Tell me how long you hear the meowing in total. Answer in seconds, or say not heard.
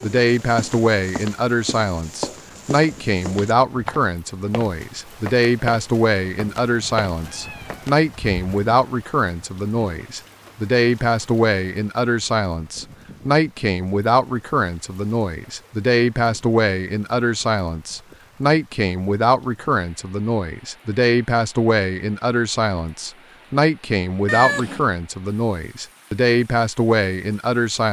2 s.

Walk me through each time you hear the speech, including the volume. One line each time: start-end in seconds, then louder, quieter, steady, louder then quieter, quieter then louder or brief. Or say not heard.
0.0-27.8 steady.